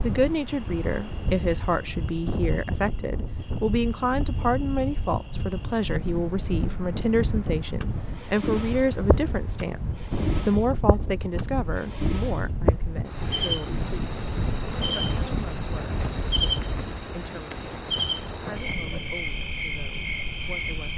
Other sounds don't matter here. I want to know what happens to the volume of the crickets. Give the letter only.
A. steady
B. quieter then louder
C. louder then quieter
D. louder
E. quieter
D.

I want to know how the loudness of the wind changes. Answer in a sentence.
The volume of the wind stays about the same.